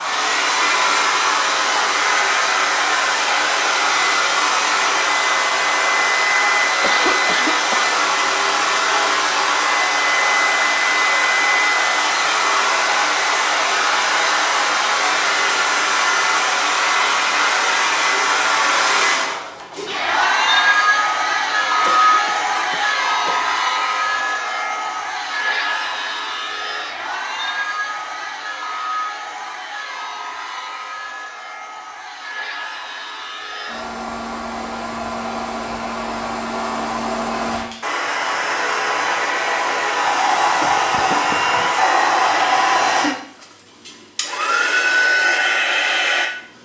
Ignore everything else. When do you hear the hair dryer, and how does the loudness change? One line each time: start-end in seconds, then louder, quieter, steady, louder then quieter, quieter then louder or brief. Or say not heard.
0.0-46.2 quieter then louder.